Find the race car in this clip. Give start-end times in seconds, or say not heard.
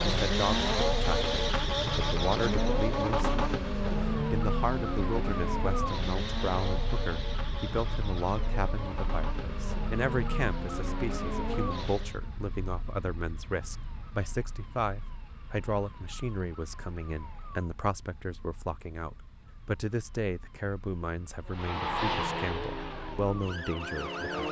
0.0-12.2, 21.4-24.4.